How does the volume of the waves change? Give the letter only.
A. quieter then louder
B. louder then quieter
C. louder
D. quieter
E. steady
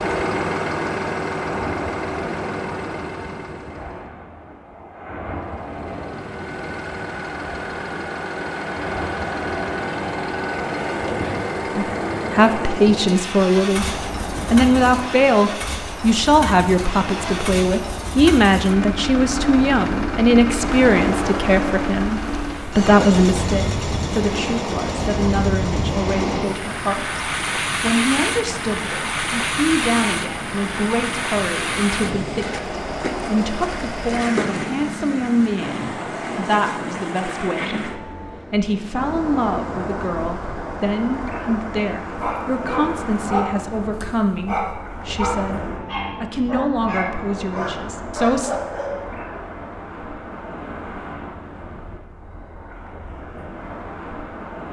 B.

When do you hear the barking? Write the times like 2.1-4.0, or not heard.
42.2-49.0.